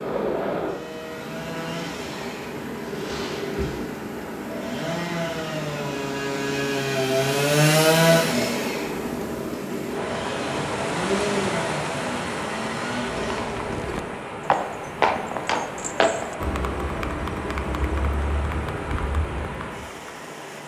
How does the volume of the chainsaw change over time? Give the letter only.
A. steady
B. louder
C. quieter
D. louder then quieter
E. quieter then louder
D.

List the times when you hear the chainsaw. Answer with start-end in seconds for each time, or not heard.
0.0-13.8.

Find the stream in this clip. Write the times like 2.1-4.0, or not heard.
0.0-20.6.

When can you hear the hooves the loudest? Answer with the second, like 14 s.
15 s.